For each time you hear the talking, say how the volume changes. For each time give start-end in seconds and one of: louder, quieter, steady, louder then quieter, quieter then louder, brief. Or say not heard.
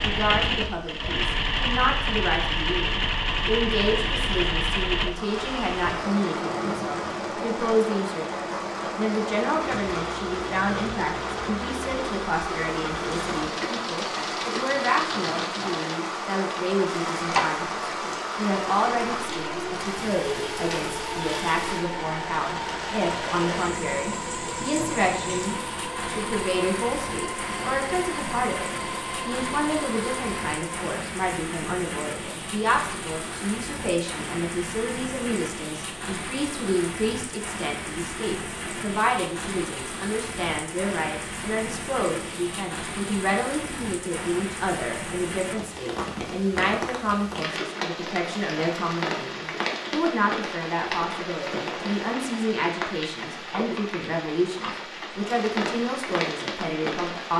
0.0-57.3 steady.